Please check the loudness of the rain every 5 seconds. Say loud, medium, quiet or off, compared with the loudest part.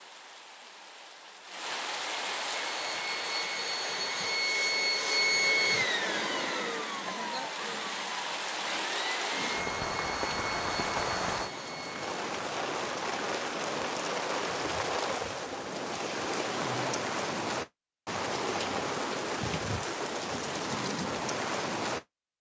medium, loud, loud, loud, loud.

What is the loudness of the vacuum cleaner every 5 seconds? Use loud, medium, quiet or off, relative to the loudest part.
loud, loud, medium, off, off.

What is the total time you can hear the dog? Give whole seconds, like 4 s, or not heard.
not heard.